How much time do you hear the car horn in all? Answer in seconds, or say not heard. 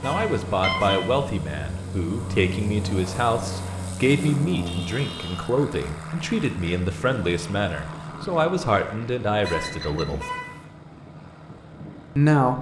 3 s.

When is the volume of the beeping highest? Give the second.
1 s.